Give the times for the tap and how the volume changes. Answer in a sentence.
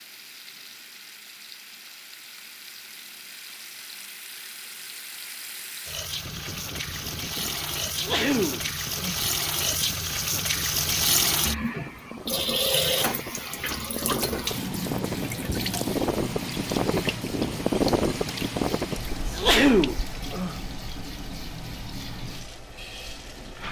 You can hear the tap from 0.0 to 23.6 s, getting louder then quieter.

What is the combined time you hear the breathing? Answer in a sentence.
You can't hear the breathing here.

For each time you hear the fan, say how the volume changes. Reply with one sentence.
You can hear the fan from 6.2 to 23.6 s, getting louder then quieter.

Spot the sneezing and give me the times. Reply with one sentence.
You can hear the sneezing from 7.9 to 9.3 s and from 19.2 to 20.6 s.